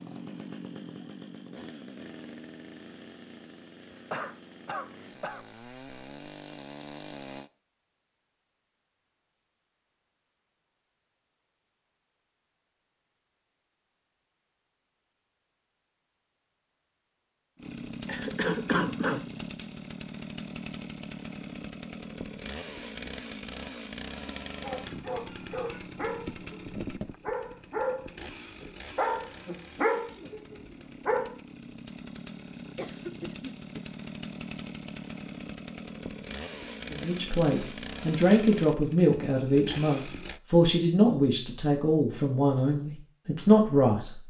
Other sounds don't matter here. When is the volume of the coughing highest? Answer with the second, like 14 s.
19 s.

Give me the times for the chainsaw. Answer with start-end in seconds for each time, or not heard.
0.0-7.5, 17.6-40.4.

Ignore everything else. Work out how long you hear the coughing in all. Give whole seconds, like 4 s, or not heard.
4 s.